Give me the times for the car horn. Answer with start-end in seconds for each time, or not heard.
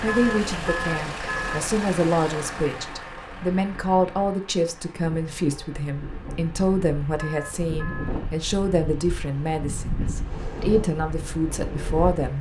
0.1-1.7, 7.2-8.2.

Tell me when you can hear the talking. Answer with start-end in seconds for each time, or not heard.
0.0-12.3.